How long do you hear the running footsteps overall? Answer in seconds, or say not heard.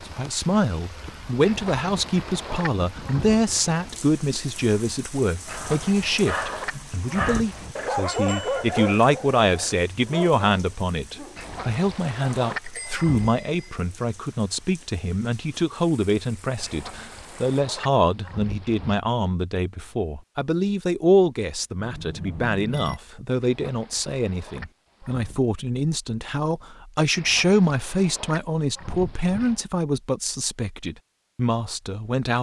not heard.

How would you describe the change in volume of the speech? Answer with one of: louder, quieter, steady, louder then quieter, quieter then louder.
steady.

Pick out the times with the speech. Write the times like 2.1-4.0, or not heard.
0.1-32.3.